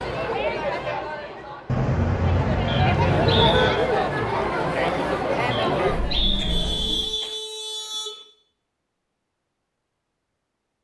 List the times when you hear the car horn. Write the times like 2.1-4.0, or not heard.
1.6-3.7, 6.3-8.2.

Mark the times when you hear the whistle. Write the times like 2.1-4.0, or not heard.
2.6-3.9, 5.5-7.3.